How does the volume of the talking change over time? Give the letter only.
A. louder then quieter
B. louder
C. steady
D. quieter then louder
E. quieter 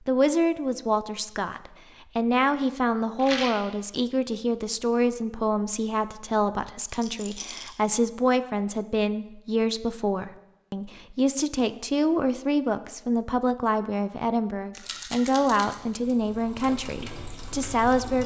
C.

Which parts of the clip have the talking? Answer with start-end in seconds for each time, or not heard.
0.1-18.2.